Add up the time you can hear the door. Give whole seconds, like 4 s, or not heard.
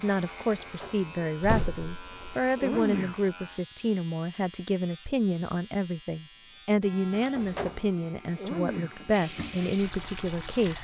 2 s.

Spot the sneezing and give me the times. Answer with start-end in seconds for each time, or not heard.
2.5-3.2, 8.3-9.0.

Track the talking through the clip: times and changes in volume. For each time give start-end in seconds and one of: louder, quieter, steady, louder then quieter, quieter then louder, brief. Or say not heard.
0.0-10.8 steady.